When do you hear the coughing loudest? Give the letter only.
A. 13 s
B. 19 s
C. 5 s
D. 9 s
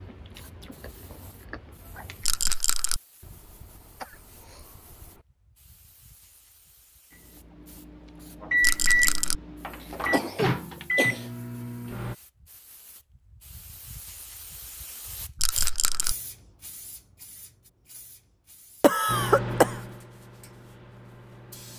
B.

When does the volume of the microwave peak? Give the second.
9 s.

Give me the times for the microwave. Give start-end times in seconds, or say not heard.
7.3-12.2, 19.1-21.7.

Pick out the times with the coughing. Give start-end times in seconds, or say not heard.
3.2-5.2, 9.8-11.3, 18.8-19.8.